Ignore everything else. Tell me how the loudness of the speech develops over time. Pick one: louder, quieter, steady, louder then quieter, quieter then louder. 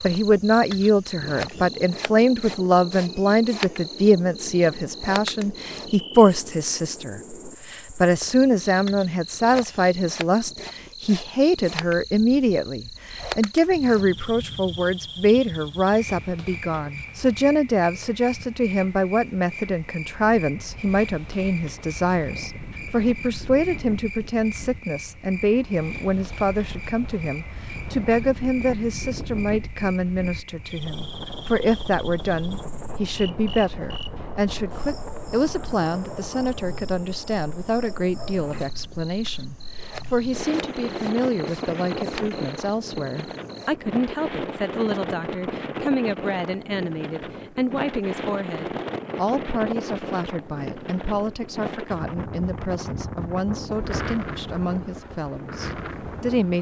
quieter.